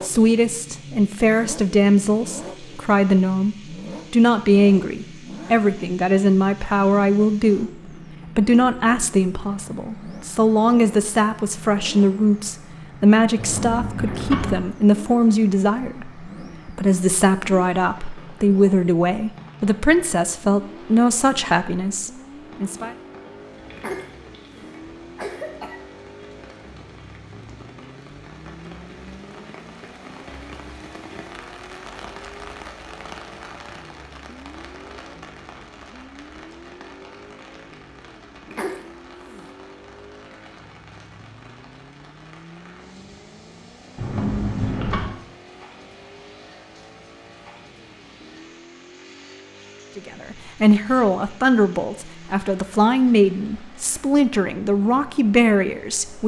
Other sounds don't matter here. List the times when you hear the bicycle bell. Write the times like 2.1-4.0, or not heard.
not heard.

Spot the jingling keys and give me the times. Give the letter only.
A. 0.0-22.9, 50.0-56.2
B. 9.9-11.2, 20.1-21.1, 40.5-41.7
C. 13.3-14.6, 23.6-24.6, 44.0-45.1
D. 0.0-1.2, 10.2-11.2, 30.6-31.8
C.